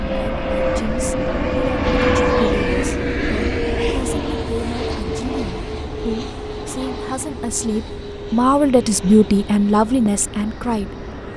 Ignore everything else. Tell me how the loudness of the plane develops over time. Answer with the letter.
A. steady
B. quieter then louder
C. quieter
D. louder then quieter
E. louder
C.